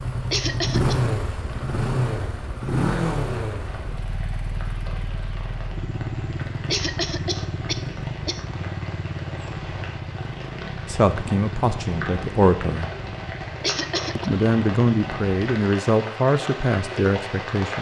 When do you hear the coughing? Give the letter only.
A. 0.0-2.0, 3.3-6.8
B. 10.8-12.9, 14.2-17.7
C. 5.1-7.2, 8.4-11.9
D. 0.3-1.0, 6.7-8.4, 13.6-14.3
D.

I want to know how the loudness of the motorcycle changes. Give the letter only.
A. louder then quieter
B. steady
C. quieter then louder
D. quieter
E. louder
D.